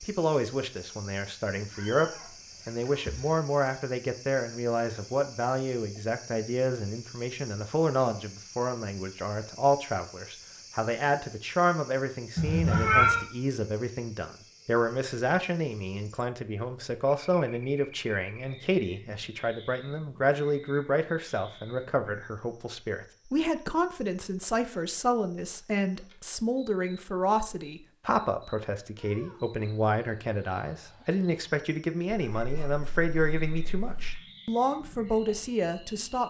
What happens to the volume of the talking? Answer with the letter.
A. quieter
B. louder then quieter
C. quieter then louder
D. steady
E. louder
D.